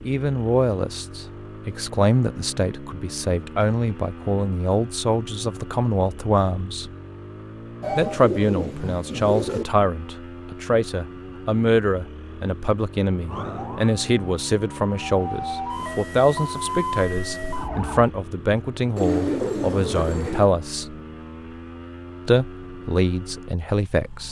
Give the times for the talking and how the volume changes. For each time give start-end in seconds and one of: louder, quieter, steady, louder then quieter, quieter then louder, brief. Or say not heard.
0.1-6.9 steady
8.0-20.9 steady
22.2-24.2 brief.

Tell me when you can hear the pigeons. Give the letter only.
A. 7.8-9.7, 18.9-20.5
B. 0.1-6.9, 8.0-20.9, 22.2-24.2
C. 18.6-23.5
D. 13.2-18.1
A.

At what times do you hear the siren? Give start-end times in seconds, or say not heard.
13.2-18.1.